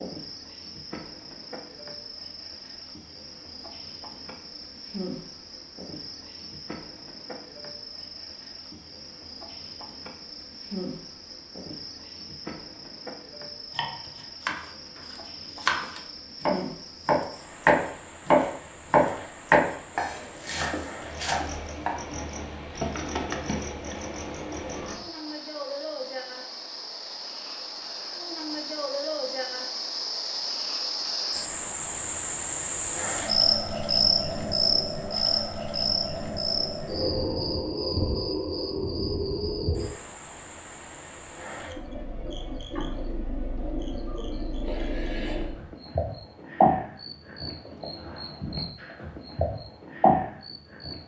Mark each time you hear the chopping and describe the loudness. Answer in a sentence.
The chopping can be heard from 13.7 to 21.9 s, getting louder then quieter.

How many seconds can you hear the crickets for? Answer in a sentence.
The crickets can be heard for 51 seconds in total.